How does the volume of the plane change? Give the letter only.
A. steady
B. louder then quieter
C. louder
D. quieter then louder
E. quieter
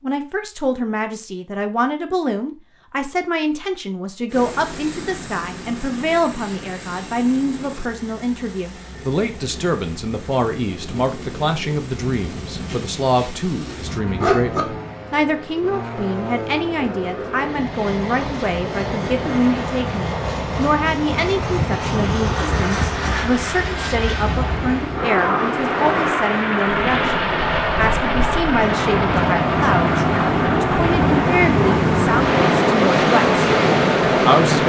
C.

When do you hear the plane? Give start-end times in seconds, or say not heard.
4.3-34.6.